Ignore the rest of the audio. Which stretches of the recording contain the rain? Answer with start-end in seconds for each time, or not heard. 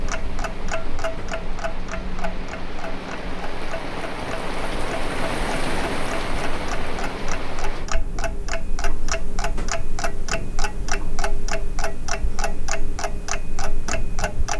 0.0-7.9.